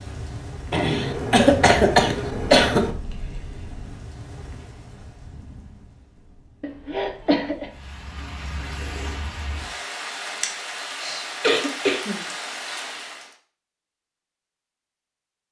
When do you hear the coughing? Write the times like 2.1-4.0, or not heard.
0.7-2.9, 6.6-7.7, 11.0-12.2.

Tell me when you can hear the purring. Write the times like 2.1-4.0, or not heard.
not heard.